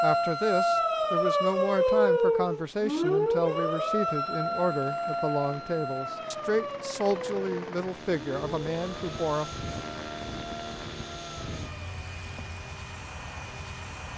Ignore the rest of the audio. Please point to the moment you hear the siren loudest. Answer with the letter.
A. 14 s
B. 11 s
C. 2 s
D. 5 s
C.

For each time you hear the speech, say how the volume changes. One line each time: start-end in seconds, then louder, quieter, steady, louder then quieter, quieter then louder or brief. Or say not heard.
0.0-9.5 steady.